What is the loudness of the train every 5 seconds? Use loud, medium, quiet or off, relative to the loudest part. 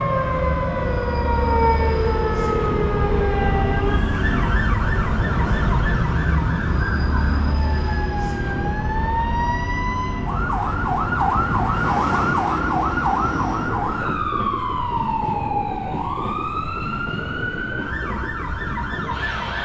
loud, loud, loud, medium.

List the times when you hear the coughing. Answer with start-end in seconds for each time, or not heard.
not heard.